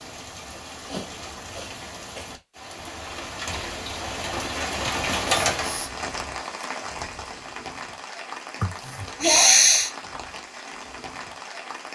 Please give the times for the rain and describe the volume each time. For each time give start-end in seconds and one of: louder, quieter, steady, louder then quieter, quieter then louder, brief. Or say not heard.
0.0-11.9 louder then quieter.